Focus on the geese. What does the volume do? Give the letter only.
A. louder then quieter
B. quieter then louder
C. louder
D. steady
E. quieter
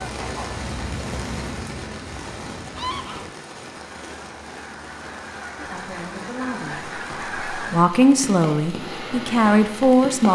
B.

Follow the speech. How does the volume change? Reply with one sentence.
The volume of the speech goes down, then up.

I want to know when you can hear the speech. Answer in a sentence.
The speech can be heard from 5.5 to 10.3 s.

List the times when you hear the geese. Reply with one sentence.
You can hear the geese from 0.0 to 7.9 s.